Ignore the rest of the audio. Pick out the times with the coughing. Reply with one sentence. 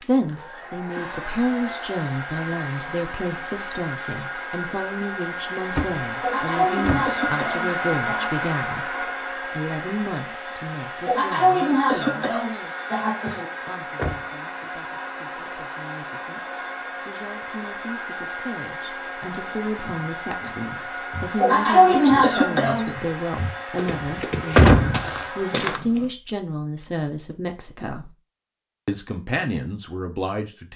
The coughing can be heard from 6.2 to 8.3 s, from 11.1 to 13.4 s and from 21.4 to 22.9 s.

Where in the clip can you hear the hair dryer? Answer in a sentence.
You can hear the hair dryer from 0.0 to 25.8 s.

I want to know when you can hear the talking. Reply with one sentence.
The talking can be heard from 0.0 to 12.8 s, from 13.6 to 28.1 s and from 28.9 to 30.7 s.